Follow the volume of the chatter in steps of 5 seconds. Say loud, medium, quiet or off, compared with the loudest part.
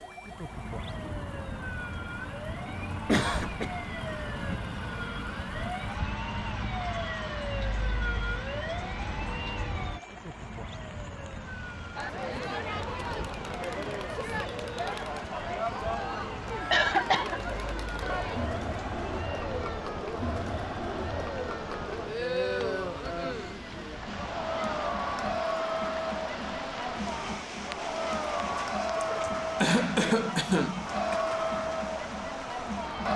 off, off, loud, loud, loud, loud, loud.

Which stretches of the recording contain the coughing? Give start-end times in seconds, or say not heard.
3.0-3.7, 16.7-17.4, 28.9-31.2.